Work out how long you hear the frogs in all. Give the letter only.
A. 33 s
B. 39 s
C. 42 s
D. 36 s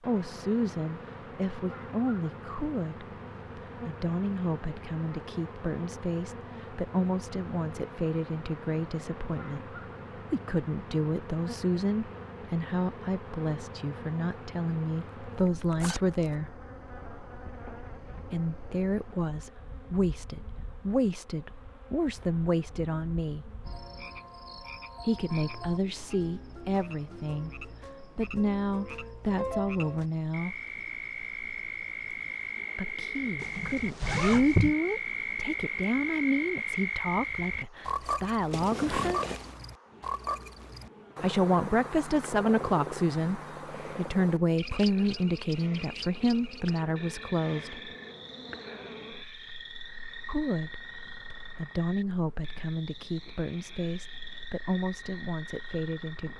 A.